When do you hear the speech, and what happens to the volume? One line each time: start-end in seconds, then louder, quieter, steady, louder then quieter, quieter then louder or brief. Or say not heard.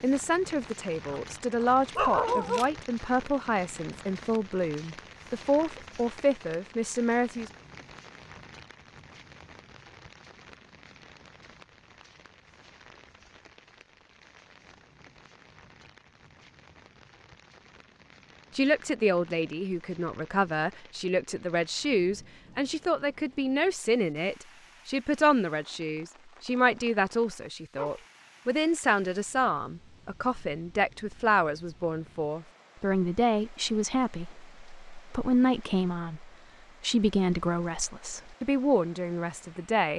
0.0-7.5 steady
18.6-39.9 steady.